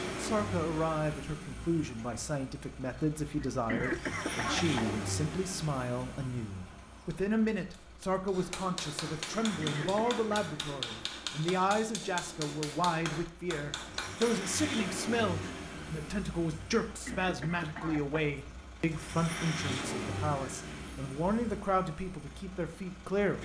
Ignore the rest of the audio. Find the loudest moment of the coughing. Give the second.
4 s.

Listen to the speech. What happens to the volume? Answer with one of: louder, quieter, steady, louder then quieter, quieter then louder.
steady.